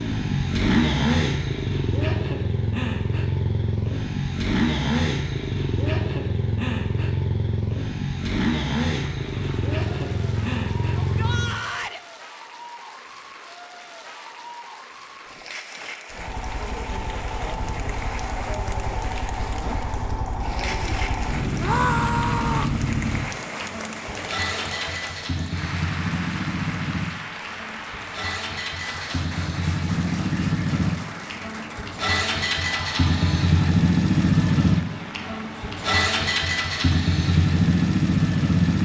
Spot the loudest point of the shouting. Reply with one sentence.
The loudest moment of the shouting is at 22 seconds.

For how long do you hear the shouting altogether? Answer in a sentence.
The shouting can be heard for 2 seconds in total.